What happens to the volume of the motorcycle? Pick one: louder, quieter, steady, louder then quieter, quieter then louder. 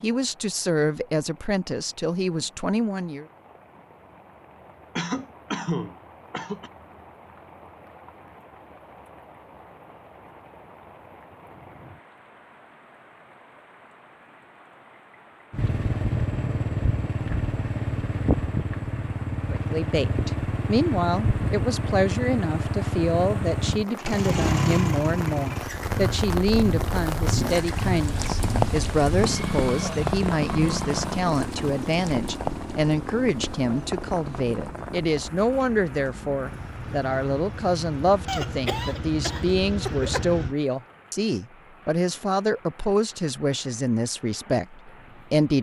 quieter.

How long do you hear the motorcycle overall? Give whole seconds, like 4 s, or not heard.
25 s.